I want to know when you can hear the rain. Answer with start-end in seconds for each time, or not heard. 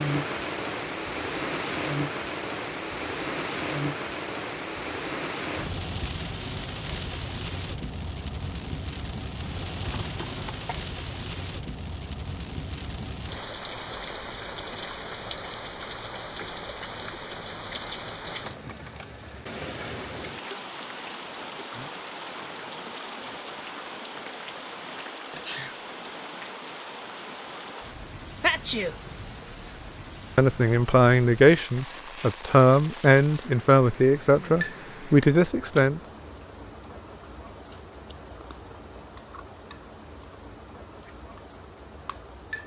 0.0-42.6.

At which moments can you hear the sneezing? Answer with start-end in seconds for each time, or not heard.
9.8-10.7, 25.1-25.8, 28.4-28.9.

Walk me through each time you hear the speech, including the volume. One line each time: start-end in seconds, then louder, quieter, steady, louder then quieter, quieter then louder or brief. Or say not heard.
30.4-36.0 steady.